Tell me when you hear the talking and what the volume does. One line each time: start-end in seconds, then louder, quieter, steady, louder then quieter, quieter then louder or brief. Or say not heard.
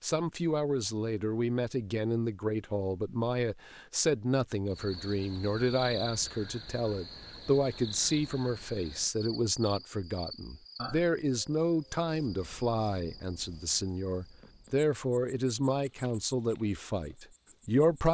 0.0-18.0 steady.